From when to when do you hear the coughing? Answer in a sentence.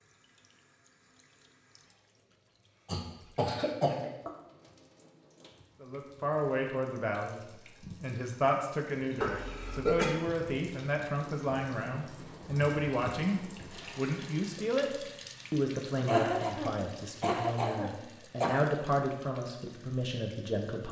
The coughing can be heard from 2.9 to 4.3 s, from 9.2 to 10.1 s and from 16.1 to 18.6 s.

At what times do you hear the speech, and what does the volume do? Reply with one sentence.
You can hear the speech briefly from 5.8 to 7.4 s; and from 8.0 to 20.8 s, at a steady volume.